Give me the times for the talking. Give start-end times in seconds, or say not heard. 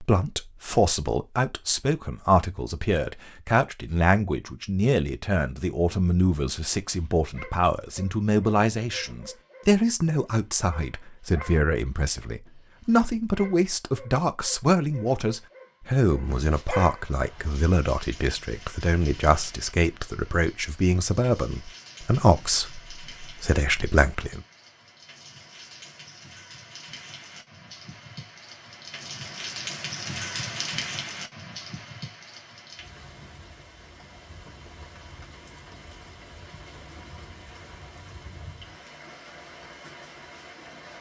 0.0-24.4.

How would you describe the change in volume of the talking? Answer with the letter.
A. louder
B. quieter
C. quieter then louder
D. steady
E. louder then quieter
D.